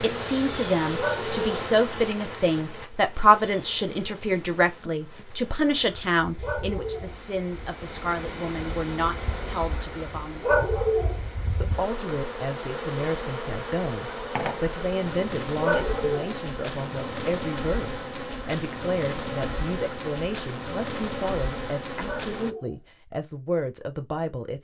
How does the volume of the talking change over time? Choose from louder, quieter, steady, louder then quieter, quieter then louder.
quieter.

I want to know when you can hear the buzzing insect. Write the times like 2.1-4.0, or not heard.
0.0-22.6.